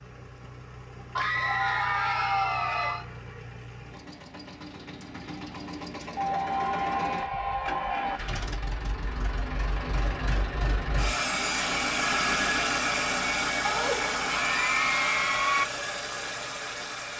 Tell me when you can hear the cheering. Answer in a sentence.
You can hear the cheering from 1.1 to 3.0 s, from 6.2 to 8.2 s and from 13.7 to 15.7 s.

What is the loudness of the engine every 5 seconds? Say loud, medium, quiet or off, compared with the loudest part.
quiet, medium, loud, medium.